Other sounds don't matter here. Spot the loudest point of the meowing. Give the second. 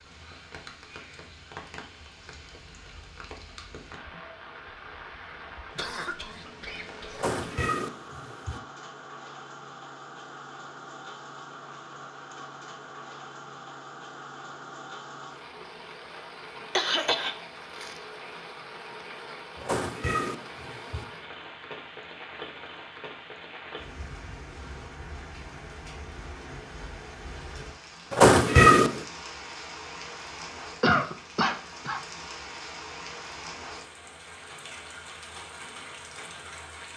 29 s.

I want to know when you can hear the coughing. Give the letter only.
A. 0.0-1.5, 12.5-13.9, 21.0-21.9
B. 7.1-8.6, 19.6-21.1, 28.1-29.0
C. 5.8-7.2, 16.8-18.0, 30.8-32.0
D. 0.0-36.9
C.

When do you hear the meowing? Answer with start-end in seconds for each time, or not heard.
7.1-8.6, 19.6-21.1, 28.1-29.0.